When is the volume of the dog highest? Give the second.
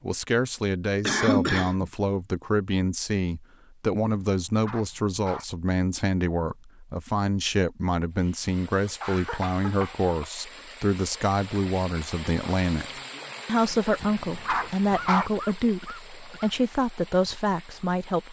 15 s.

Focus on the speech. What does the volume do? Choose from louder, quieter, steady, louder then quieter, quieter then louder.
steady.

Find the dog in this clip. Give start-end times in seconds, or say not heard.
4.2-5.5, 14.0-15.3.